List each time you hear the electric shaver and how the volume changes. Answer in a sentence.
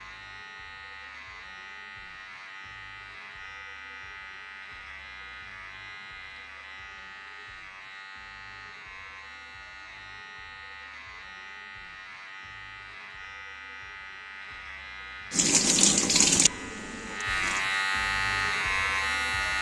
The electric shaver can be heard from 0.0 to 19.5 s, getting louder.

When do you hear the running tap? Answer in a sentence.
You can hear the running tap from 15.3 to 17.6 s.